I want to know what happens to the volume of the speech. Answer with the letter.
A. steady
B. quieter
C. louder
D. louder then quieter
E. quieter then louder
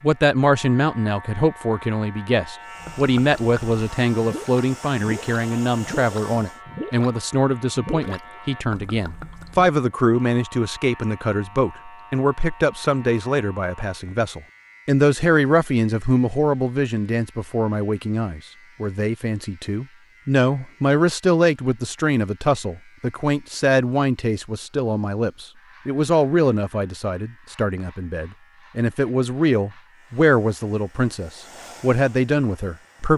A.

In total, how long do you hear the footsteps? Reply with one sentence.
The footsteps can't be heard in this clip.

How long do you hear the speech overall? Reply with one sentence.
You can hear the speech for 33 seconds altogether.